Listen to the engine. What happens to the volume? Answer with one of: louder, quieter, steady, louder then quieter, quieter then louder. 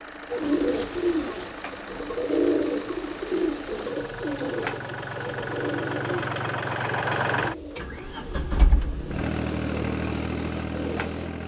louder.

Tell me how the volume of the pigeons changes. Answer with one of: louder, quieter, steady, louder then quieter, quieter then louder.
quieter.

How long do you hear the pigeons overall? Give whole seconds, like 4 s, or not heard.
11 s.